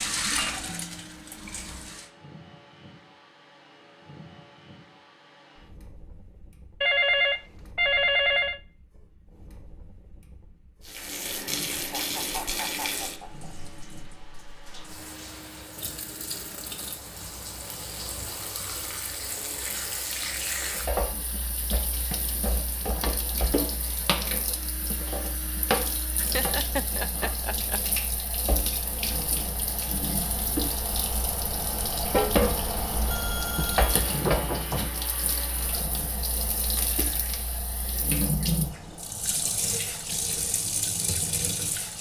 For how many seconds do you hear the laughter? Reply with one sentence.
The laughter can be heard for 3 seconds in total.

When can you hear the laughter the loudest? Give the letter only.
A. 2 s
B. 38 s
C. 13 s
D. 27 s
D.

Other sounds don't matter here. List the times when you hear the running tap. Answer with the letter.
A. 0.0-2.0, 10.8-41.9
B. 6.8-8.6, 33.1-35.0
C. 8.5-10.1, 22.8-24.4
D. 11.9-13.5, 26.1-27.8
A.